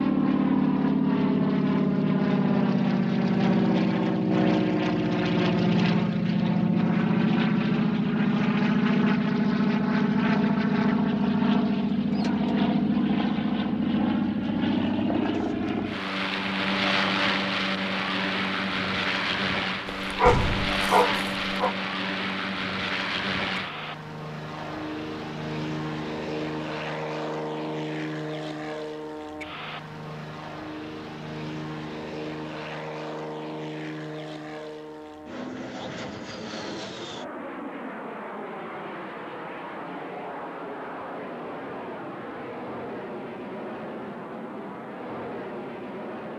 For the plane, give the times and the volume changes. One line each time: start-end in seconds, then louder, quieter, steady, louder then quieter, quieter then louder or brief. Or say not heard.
0.0-46.3 quieter.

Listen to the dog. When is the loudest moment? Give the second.
20 s.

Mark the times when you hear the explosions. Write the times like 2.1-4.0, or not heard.
20.2-20.8.